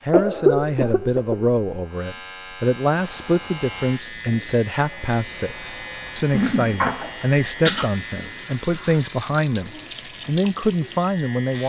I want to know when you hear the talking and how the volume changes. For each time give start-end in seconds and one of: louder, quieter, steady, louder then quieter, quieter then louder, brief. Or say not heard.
0.1-11.6 steady.